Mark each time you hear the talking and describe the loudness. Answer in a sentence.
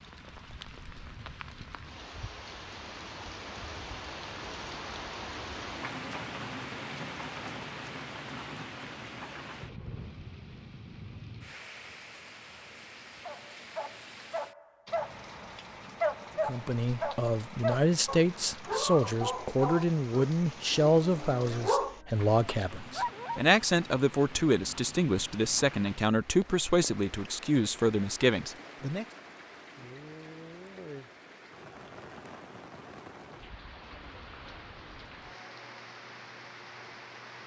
The talking can be heard from 16.4 to 29.1 s, at a steady volume.